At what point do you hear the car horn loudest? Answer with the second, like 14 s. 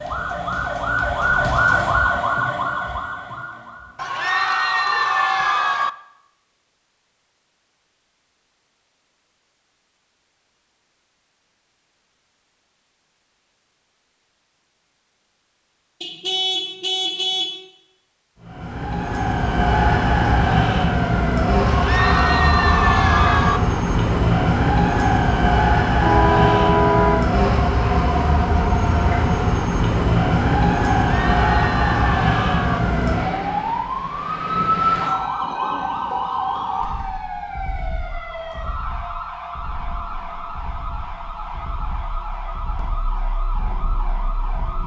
27 s.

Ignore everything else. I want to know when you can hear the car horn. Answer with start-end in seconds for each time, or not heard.
16.0-17.6, 26.0-27.2.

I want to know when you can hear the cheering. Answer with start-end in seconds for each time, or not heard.
4.0-5.9, 21.6-23.6, 31.1-32.8.